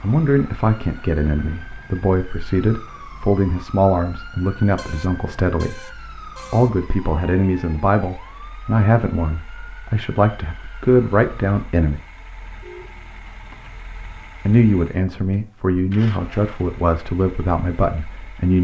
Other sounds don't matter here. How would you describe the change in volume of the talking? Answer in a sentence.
The volume of the talking stays about the same.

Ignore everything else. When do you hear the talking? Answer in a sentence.
You can hear the talking from 0.0 to 12.0 s and from 14.4 to 18.5 s.